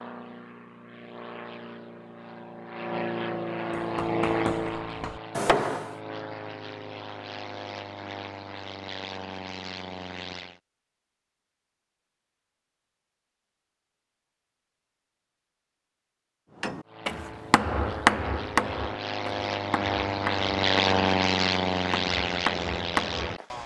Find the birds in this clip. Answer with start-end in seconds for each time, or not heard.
not heard.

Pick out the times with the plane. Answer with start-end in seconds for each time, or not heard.
0.0-10.6, 16.9-23.6.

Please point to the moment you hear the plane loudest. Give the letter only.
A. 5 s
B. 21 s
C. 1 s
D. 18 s
B.